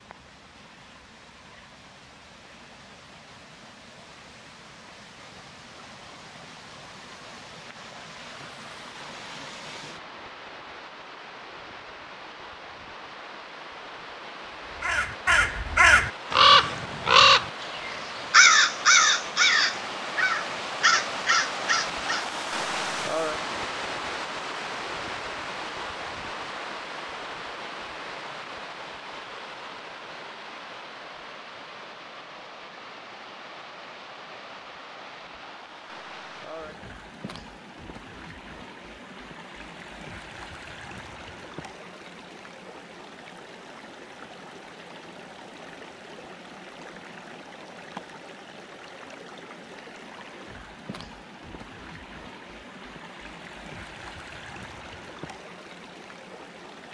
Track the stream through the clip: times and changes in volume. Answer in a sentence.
You can hear the stream from 0.0 to 56.9 s, getting louder then quieter.